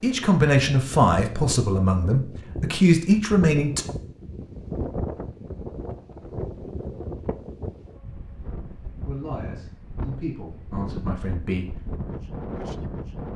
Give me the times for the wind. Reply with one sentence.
The wind can be heard from 0.0 to 13.3 s.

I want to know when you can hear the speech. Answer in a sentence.
You can hear the speech from 0.0 to 3.9 s and from 9.1 to 11.8 s.